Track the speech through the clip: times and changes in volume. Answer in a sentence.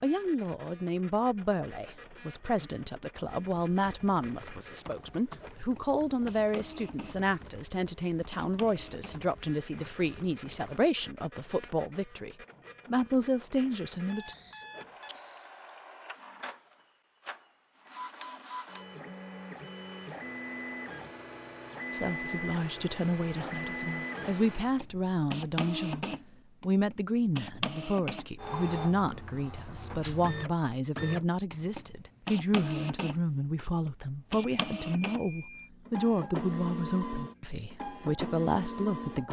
The speech can be heard from 0.0 to 14.3 s, at a steady volume; and from 21.9 to 39.2 s, at a steady volume.